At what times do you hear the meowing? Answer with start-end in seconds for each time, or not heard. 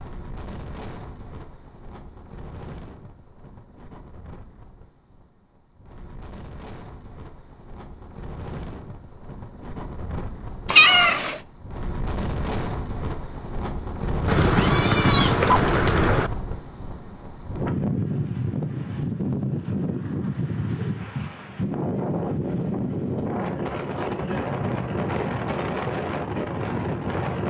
10.7-11.4, 14.2-16.3.